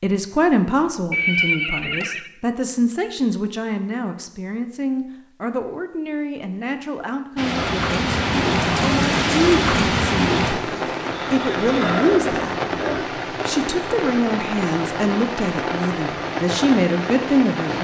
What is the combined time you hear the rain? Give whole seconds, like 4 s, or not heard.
10 s.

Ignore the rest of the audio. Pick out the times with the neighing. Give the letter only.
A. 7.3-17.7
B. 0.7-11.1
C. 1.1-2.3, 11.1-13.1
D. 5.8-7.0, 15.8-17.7
C.